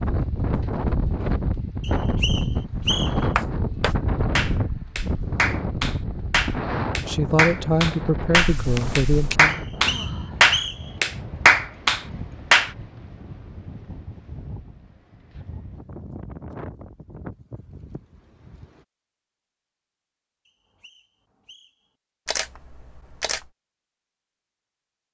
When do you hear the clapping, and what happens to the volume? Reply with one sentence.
The clapping can be heard from 3.4 to 12.7 s, getting louder.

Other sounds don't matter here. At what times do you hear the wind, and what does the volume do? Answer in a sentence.
You can hear the wind from 0.0 to 18.9 s, getting quieter.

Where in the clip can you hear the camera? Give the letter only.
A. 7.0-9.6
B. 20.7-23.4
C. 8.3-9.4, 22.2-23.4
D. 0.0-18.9
C.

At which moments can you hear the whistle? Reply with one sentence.
You can hear the whistle from 1.8 to 3.3 s, from 9.4 to 10.9 s and from 20.4 to 21.9 s.